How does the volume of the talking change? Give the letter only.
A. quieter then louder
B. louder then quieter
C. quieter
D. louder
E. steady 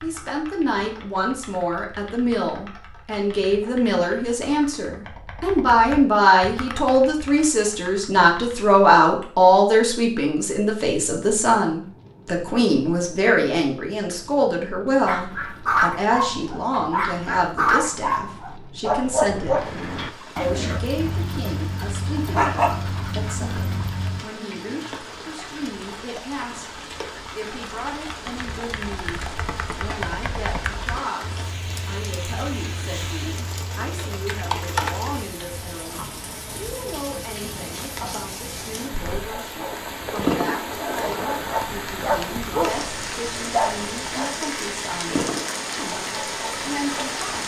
C.